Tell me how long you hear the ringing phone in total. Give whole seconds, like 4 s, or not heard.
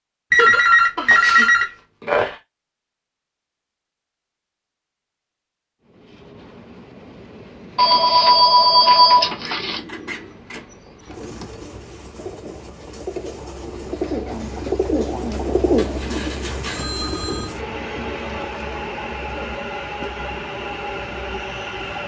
6 s.